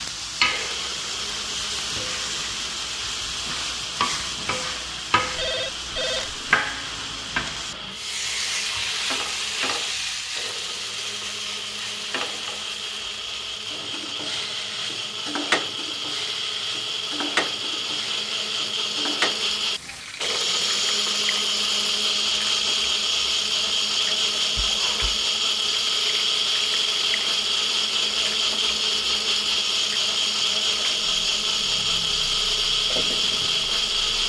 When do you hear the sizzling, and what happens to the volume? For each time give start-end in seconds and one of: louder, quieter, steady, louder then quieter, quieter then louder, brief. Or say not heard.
0.0-34.2 quieter.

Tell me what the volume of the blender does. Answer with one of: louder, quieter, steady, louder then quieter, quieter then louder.
louder.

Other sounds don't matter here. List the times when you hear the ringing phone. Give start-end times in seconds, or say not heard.
5.3-6.5, 24.6-25.2.